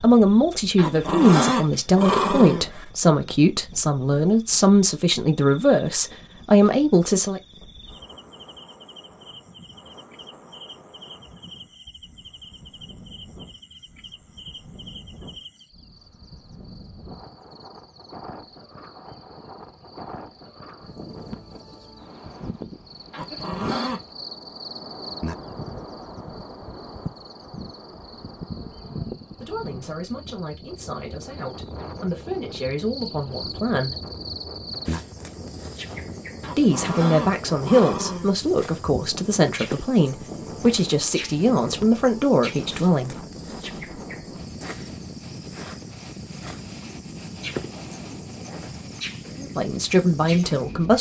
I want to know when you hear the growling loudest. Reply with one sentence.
The volume of the growling peaks at 1 second.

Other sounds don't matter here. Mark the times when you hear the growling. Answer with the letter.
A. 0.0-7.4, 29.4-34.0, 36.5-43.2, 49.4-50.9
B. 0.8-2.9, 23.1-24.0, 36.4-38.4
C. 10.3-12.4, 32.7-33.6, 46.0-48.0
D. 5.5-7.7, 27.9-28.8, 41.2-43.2
B.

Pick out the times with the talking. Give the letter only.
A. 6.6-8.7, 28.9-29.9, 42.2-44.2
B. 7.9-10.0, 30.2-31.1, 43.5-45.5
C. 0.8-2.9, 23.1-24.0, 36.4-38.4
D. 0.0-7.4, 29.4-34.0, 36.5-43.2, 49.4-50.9
D.